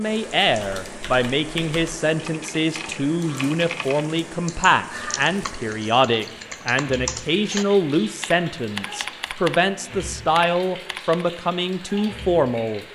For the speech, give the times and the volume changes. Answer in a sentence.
The speech can be heard from 0.0 to 12.8 s, at a steady volume.